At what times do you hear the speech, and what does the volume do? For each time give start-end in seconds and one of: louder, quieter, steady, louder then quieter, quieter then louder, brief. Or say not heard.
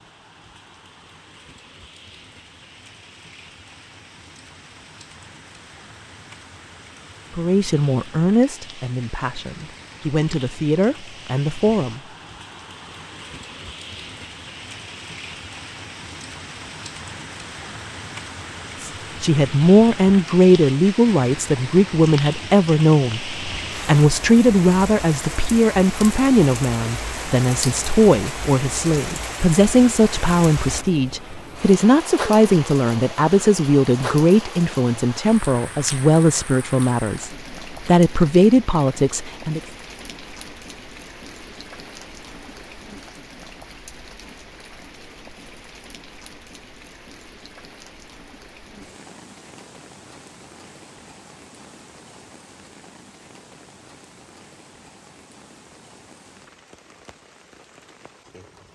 7.3-12.0 quieter then louder
18.8-39.6 steady.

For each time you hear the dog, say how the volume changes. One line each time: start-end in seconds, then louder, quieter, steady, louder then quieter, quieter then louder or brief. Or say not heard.
not heard.